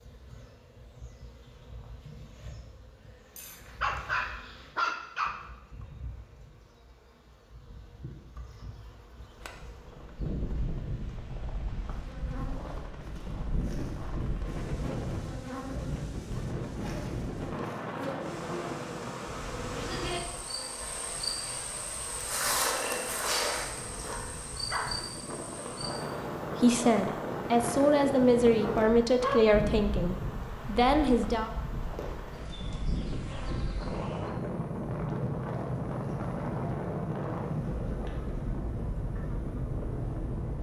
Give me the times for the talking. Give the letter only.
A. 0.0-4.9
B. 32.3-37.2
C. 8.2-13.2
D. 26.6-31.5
D.